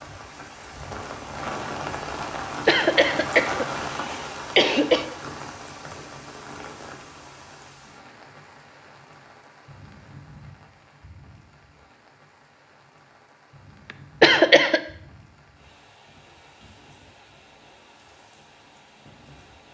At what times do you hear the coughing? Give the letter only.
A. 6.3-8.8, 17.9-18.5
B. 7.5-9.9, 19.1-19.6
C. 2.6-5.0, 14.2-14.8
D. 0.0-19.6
C.